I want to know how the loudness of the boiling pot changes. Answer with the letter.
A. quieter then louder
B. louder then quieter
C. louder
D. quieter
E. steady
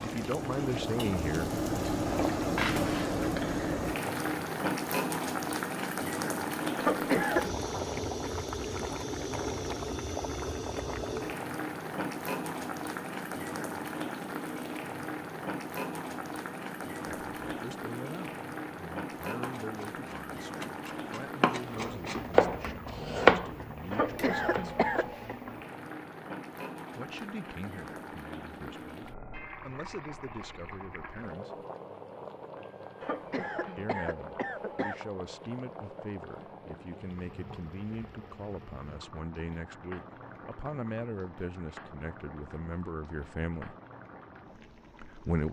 D.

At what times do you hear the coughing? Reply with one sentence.
The coughing can be heard from 6.8 to 7.5 s, from 23.9 to 25.4 s and from 33.0 to 35.0 s.